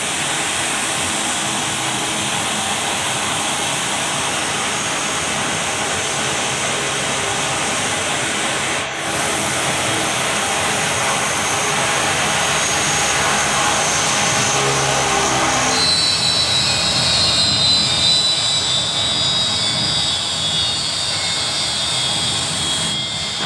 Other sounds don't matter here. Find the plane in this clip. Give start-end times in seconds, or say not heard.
0.0-23.4.